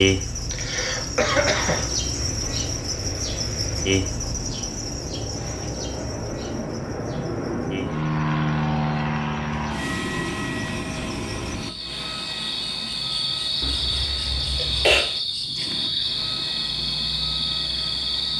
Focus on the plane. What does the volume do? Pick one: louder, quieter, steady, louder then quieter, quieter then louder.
louder then quieter.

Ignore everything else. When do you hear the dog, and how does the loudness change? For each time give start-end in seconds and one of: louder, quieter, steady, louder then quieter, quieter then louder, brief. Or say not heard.
not heard.